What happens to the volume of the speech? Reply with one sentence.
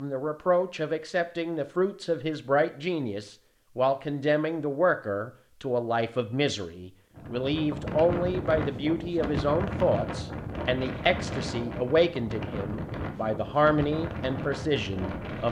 The loudness of the speech stays about the same.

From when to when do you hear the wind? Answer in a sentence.
You can hear the wind from 7.1 to 15.4 s.